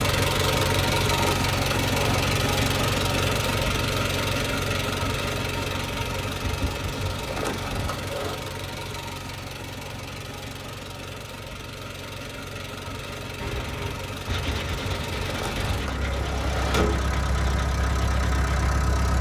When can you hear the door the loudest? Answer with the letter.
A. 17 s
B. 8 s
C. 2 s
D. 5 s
A.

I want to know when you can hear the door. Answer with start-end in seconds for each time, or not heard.
1.1-2.2, 7.2-8.3, 15.2-17.1.